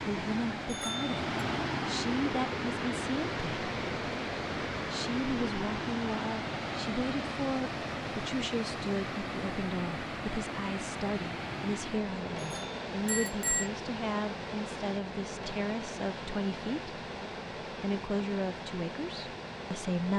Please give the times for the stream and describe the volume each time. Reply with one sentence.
You can hear the stream from 0.0 to 20.1 s, getting quieter.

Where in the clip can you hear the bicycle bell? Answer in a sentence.
You can hear the bicycle bell from 0.7 to 1.2 s and from 12.4 to 13.7 s.